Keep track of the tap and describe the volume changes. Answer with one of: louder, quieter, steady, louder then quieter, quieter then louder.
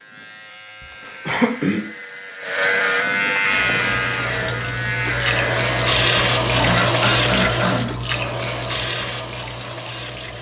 louder then quieter.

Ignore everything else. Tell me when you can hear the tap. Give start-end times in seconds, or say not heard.
3.5-10.3.